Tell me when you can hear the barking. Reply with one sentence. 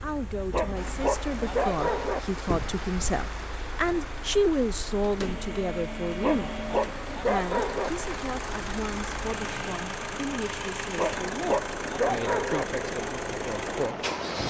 The barking can be heard from 0.5 to 2.2 s, from 6.2 to 7.9 s and from 10.9 to 12.7 s.